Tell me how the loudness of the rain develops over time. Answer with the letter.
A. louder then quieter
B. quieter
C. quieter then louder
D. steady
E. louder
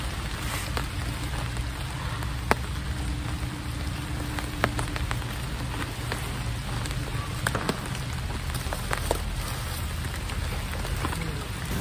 D.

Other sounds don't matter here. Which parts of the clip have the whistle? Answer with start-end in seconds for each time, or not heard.
7.5-8.1.